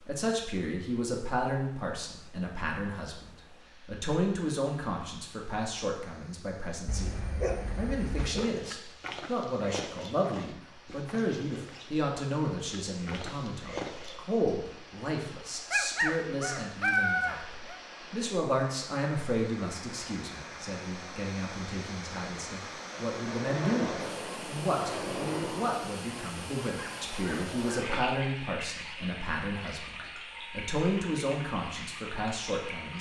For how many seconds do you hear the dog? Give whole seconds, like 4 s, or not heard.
5 s.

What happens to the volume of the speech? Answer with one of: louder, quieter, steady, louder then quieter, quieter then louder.
steady.